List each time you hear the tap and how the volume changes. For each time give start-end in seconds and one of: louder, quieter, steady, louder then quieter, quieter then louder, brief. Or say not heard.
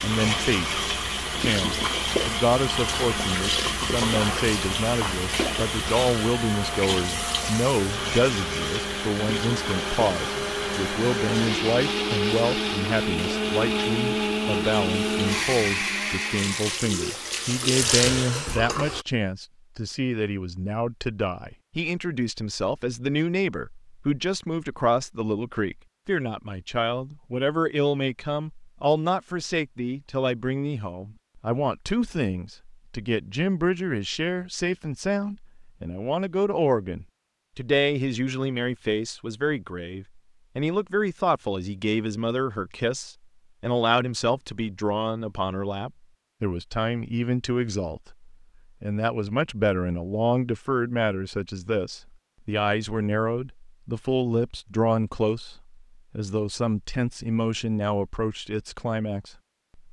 0.0-19.1 quieter then louder.